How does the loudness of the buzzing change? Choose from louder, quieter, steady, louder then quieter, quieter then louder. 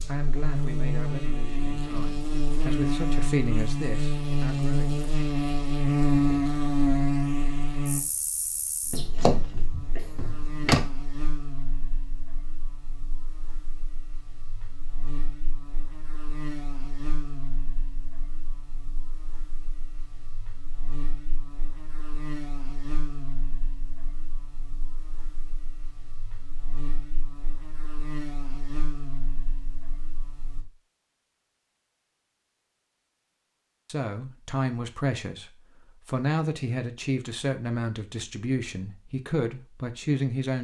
quieter.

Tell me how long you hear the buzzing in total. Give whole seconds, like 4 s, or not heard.
31 s.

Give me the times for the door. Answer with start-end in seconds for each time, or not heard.
8.9-10.8.